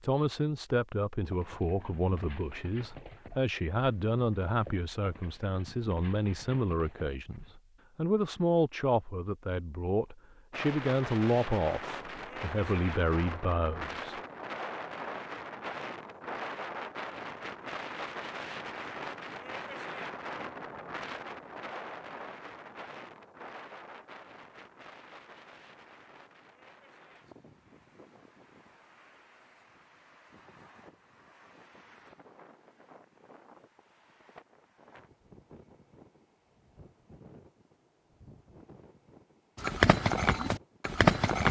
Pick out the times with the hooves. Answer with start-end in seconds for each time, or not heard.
1.2-7.6, 39.5-41.4.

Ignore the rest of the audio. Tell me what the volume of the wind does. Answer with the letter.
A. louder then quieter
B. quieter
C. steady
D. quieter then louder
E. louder
B.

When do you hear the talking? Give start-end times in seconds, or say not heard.
0.0-14.2.